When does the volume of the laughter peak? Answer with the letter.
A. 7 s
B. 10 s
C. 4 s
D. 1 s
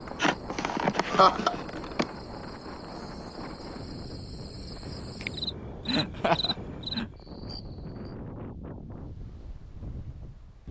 D.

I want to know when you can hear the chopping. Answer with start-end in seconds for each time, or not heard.
not heard.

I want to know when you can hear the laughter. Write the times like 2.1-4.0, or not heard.
0.1-2.0, 5.8-7.1.